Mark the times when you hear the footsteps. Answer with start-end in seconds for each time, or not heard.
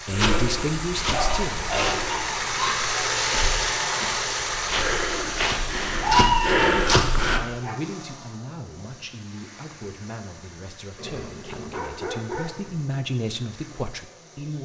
0.1-7.4.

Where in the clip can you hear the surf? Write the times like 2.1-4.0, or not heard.
not heard.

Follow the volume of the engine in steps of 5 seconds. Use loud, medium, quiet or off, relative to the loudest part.
loud, medium, quiet.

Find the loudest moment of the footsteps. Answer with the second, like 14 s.
7 s.